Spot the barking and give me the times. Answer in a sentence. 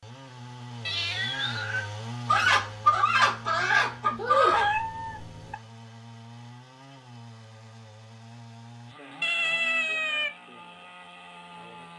You can't hear the barking here.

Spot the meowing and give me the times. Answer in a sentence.
The meowing can be heard from 0.8 to 1.9 s, from 4.5 to 5.5 s and from 9.2 to 10.3 s.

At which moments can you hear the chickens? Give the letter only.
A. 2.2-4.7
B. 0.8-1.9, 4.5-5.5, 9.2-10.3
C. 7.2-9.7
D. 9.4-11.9
A.